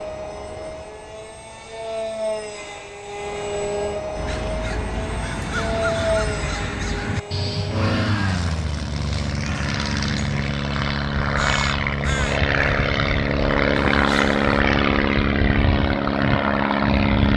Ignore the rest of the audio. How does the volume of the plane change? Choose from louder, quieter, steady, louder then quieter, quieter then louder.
louder.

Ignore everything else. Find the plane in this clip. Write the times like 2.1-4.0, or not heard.
0.0-17.3.